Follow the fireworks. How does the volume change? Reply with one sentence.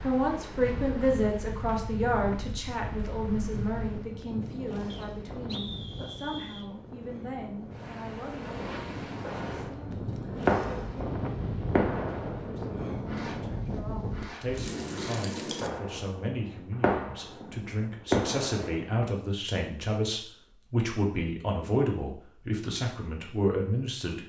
The loudness of the fireworks goes down, then up.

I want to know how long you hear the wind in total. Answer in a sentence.
You can hear the wind for 16 seconds altogether.